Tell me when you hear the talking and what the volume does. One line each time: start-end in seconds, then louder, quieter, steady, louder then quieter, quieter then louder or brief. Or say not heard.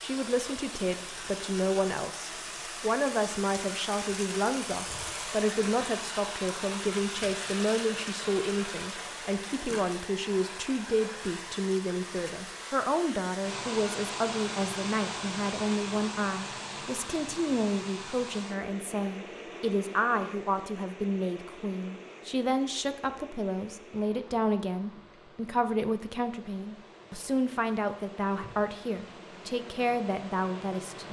0.0-31.0 steady.